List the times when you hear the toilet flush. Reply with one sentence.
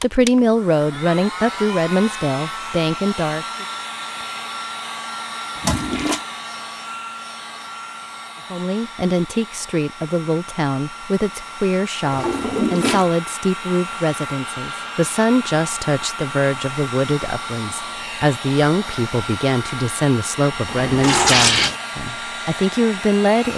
You can hear the toilet flush from 5.6 to 6.2 s, from 12.0 to 13.1 s and from 20.6 to 21.8 s.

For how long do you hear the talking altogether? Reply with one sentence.
The talking can be heard for 19 seconds in total.